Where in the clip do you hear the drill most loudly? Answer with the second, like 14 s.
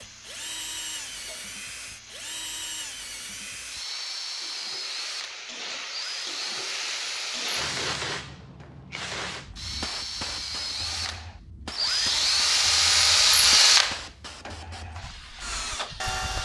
13 s.